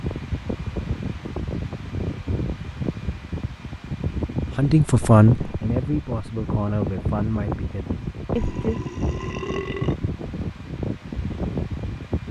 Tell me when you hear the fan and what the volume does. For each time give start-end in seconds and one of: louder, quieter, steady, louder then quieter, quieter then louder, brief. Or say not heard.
0.0-12.2 steady.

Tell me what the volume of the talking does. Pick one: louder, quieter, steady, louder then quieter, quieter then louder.
quieter.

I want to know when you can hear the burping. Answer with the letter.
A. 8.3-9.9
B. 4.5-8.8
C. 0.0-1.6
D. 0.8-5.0
A.